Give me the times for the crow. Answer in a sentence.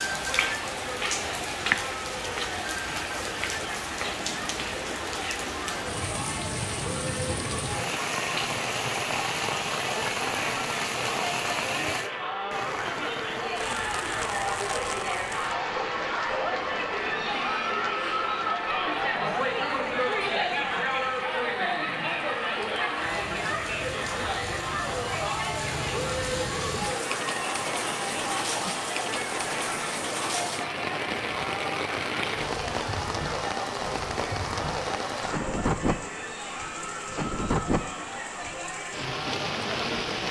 The crow can't be heard in this clip.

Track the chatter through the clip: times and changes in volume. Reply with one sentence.
The chatter can be heard from 0.0 to 40.2 s, getting louder then quieter.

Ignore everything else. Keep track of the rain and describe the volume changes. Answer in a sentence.
The loudness of the rain goes down, then up.